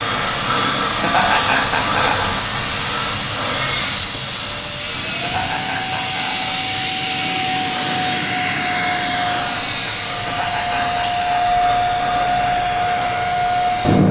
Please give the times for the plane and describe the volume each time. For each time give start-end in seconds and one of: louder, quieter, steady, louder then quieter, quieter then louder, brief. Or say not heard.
0.0-14.0 steady.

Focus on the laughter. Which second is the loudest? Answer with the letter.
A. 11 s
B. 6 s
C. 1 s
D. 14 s
C.